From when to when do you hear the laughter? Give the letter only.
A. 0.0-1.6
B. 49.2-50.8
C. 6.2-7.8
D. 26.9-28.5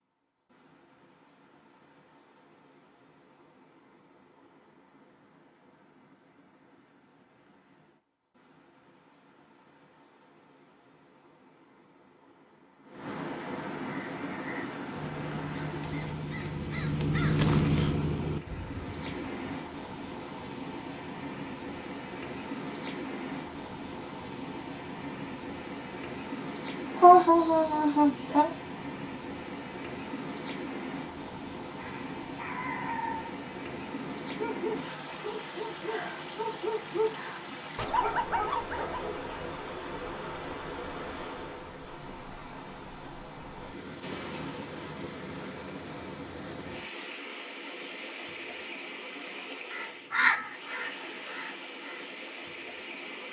D.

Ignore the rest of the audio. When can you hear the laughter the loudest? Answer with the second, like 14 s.
27 s.